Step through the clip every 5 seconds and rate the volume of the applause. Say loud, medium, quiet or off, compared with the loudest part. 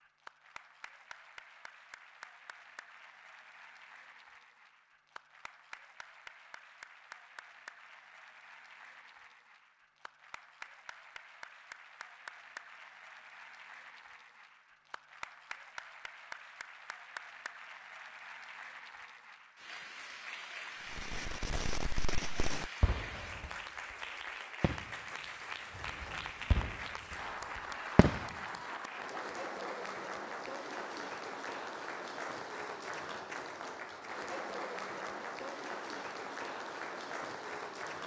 quiet, quiet, medium, medium, loud, loud, loud, loud.